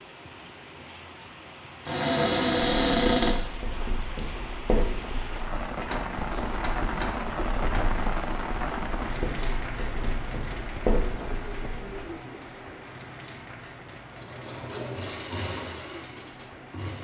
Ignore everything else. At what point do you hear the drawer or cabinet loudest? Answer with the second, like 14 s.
3 s.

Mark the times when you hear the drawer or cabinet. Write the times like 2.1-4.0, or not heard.
1.9-3.4.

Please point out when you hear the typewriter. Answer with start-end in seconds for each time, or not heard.
5.5-8.0.